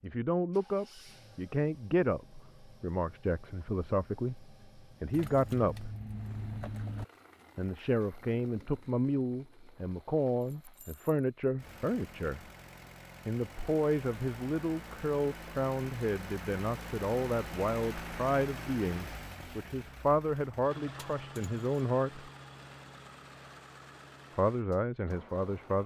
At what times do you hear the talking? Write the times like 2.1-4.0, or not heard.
0.0-6.0, 7.5-12.4, 13.2-22.3, 24.4-25.8.